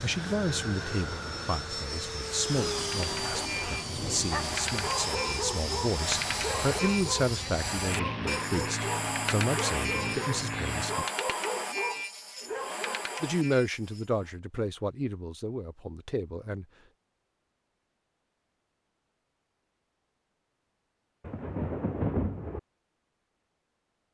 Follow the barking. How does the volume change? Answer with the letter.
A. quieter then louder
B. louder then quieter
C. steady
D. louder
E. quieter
C.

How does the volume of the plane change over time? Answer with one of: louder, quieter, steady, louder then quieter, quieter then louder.
steady.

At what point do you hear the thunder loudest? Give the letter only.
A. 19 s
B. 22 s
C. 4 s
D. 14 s
B.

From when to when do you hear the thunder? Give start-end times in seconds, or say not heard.
2.5-4.5, 21.2-22.6.